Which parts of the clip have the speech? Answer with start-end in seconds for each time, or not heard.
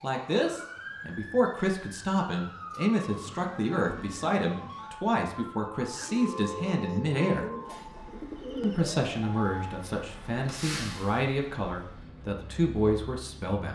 0.0-7.5, 8.6-13.6.